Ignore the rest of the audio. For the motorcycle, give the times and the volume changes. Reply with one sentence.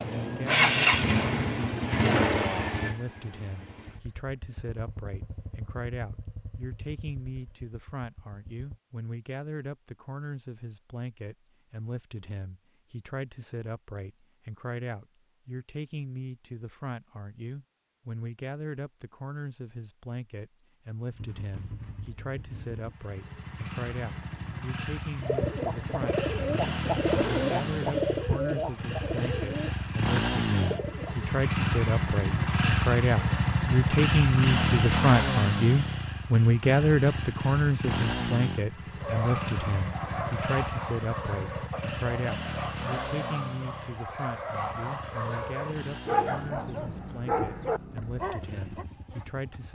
The motorcycle can be heard from 0.0 to 8.8 s, getting quieter; and from 21.1 to 49.6 s, getting louder then quieter.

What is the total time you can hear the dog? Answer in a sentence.
The dog can be heard for 10 seconds in total.